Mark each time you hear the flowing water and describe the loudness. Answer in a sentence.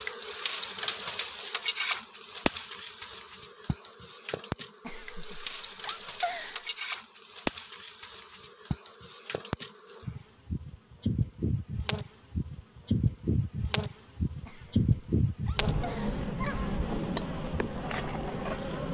You can't hear the flowing water here.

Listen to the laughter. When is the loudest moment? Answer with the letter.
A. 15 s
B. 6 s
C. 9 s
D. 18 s
B.